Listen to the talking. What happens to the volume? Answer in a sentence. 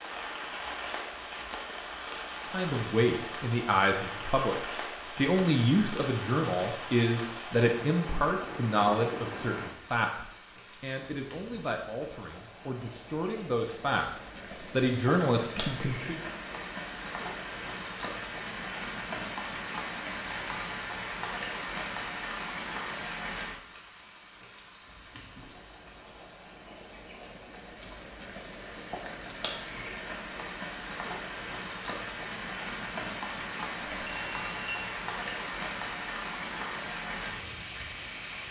The volume of the talking goes down, then up.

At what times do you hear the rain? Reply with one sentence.
You can hear the rain from 0.0 to 38.4 s.